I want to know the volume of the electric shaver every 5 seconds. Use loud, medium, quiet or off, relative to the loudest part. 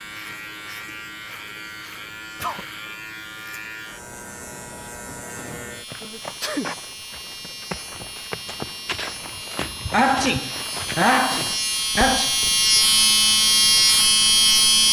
quiet, quiet, loud.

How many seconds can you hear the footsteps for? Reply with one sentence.
You can hear the footsteps for 7 seconds altogether.